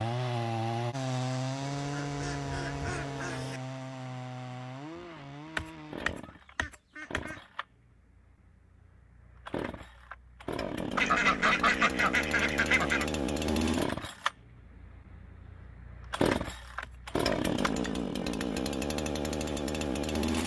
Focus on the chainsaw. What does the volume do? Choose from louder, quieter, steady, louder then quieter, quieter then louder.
quieter then louder.